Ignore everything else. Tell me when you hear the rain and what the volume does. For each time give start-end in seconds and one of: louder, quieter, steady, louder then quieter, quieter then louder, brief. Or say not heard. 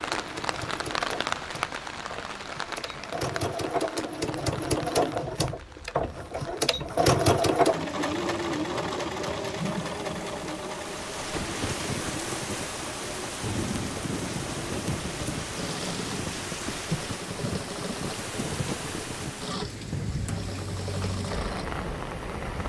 0.0-22.6 quieter then louder.